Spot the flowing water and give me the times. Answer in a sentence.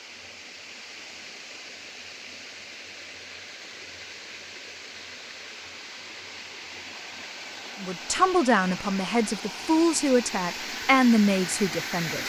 You can hear the flowing water from 0.0 to 12.2 s.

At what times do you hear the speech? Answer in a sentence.
The speech can be heard from 7.8 to 12.2 s.